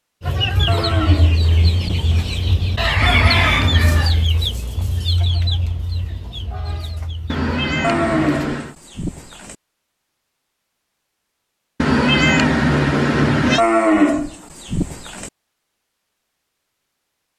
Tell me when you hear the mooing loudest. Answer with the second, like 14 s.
14 s.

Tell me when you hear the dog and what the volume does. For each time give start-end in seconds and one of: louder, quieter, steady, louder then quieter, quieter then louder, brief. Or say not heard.
not heard.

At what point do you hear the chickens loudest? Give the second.
3 s.